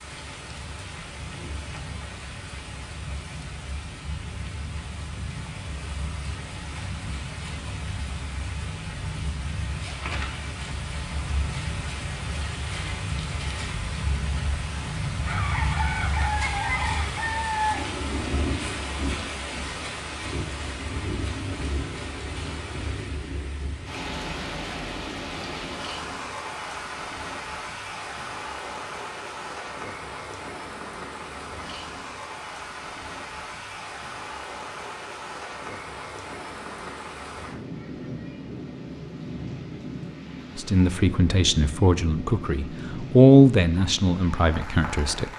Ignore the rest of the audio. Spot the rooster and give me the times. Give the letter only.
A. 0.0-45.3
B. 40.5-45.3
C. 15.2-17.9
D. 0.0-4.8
C.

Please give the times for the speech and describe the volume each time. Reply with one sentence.
The speech can be heard from 40.5 to 45.3 s, getting louder then quieter.